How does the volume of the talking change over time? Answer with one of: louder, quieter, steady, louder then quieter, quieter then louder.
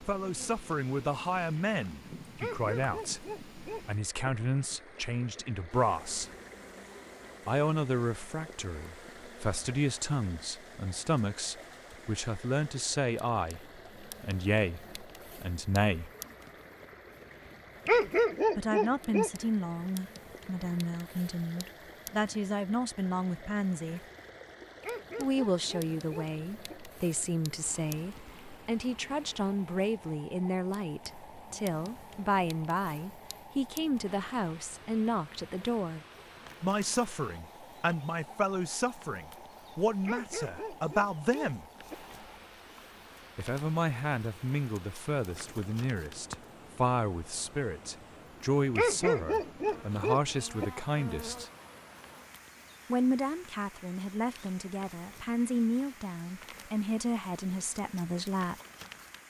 steady.